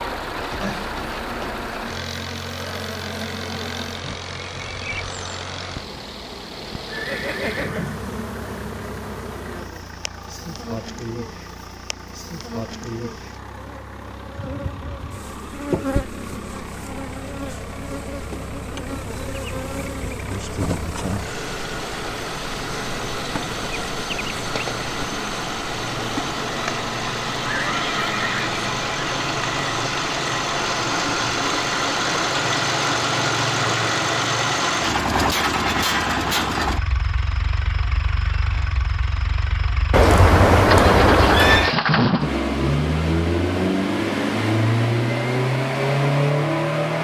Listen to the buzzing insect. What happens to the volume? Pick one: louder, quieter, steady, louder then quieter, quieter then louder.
steady.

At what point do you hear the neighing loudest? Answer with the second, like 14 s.
41 s.